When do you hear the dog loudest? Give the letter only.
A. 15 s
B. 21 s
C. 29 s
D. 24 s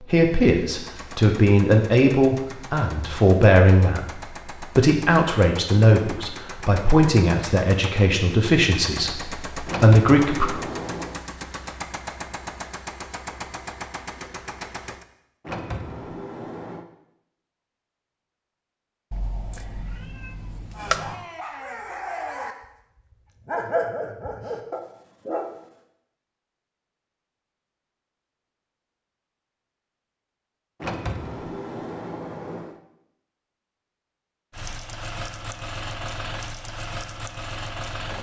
D.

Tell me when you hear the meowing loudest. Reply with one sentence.
The loudest moment of the meowing is at 21 seconds.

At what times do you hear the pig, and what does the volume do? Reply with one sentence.
You can't hear the pig here.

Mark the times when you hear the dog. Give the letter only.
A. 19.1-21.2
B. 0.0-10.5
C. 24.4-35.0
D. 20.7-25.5
D.